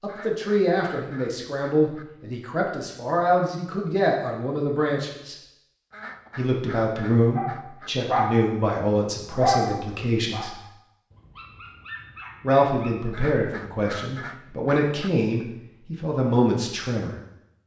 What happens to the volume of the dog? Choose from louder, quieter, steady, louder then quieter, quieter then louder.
quieter then louder.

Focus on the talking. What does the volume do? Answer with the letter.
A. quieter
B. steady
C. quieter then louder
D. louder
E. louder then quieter
B.